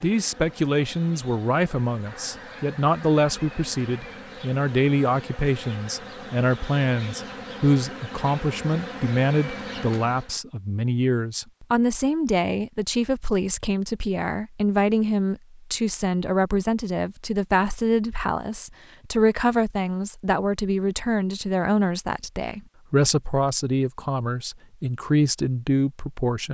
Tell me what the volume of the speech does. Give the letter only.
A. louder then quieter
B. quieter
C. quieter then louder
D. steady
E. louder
D.